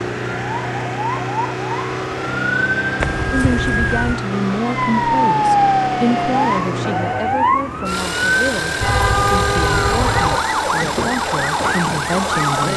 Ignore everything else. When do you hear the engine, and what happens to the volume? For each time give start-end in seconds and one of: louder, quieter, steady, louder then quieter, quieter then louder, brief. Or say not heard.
0.0-12.7 steady.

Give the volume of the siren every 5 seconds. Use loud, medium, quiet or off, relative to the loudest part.
medium, loud, loud.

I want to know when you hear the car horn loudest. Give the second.
9 s.